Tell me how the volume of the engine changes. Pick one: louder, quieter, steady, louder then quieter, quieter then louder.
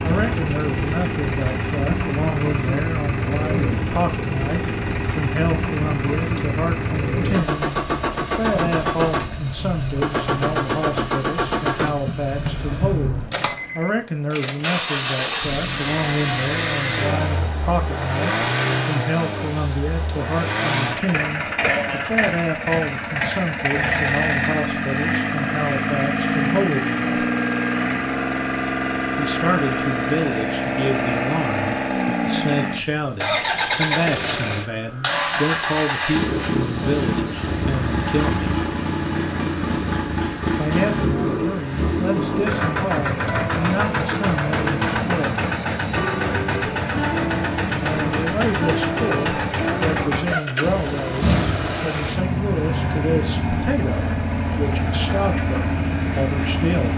steady.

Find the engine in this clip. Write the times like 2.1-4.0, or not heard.
0.0-56.9.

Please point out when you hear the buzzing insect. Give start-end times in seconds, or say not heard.
not heard.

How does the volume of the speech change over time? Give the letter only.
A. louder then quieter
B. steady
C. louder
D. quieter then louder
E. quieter
B.